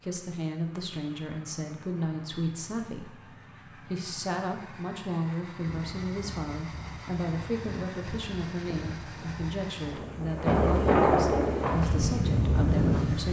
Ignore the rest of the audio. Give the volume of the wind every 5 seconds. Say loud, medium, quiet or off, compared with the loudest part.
off, quiet, loud.